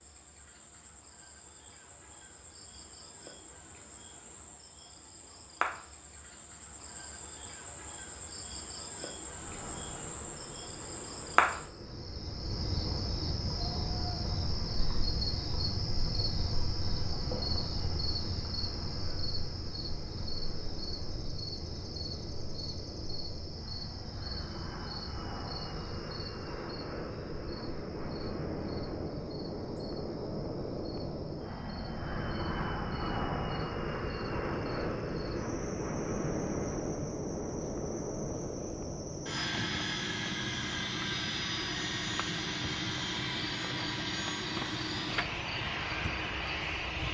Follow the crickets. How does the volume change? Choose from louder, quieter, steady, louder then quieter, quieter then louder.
louder then quieter.